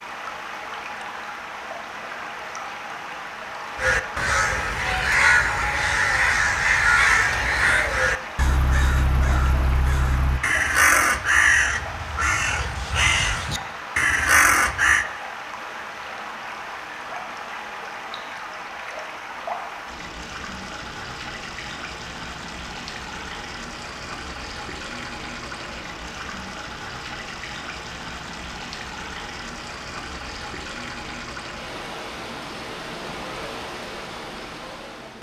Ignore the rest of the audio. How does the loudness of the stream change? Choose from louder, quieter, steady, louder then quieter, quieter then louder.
steady.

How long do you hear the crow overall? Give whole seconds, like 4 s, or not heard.
11 s.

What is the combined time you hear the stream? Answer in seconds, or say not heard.
35 s.